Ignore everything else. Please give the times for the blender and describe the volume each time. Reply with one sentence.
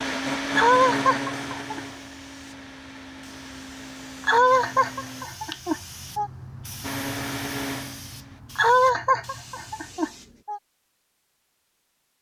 You can hear the blender from 0.0 to 5.2 s, getting quieter; and briefly from 6.8 to 8.4 s.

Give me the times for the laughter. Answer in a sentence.
You can hear the laughter from 0.5 to 1.8 s, from 4.2 to 6.3 s and from 8.6 to 10.6 s.